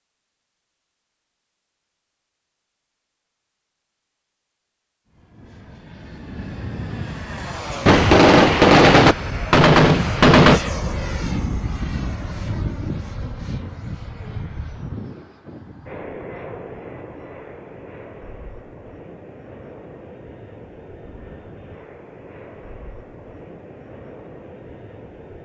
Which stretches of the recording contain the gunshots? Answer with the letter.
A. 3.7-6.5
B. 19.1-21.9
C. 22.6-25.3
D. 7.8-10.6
D.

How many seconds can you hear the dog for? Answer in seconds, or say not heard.
not heard.